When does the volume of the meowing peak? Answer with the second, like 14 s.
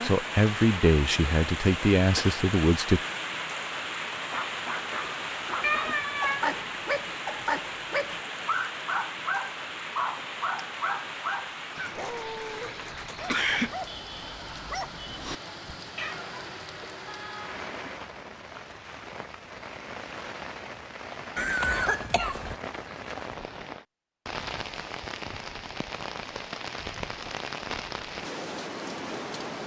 6 s.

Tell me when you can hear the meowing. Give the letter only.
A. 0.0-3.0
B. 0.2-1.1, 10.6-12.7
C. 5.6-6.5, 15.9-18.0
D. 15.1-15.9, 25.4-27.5
C.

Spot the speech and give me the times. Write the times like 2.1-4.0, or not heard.
0.0-3.0.